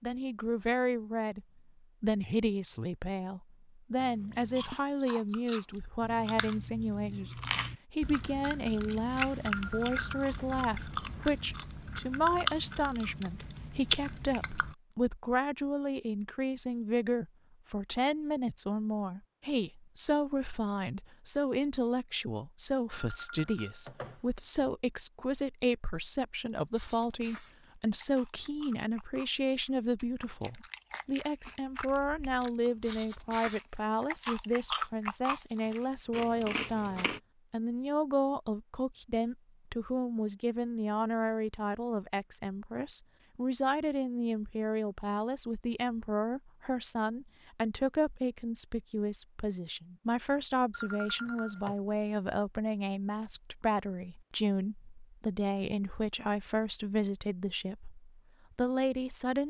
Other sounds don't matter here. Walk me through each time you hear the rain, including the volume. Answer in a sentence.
The rain can't be heard in this clip.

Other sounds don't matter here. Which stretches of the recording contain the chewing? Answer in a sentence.
You can hear the chewing from 4.0 to 14.8 s and from 26.4 to 37.2 s.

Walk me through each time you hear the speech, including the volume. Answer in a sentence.
You can hear the speech from 0.0 to 59.4 s, at a steady volume.